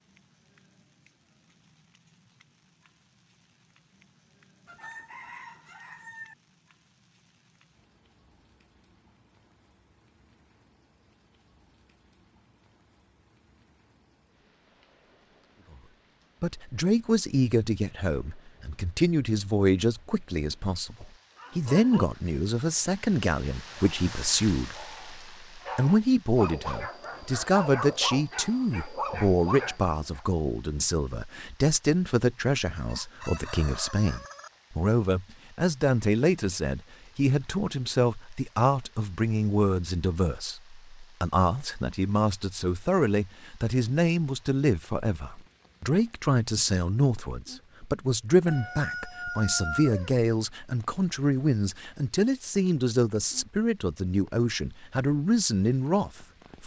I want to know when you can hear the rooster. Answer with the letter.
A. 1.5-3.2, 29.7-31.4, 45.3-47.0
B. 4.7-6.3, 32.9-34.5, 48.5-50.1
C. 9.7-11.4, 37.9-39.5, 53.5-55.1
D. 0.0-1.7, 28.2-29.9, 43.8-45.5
B.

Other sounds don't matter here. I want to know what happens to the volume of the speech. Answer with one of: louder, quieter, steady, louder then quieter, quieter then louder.
steady.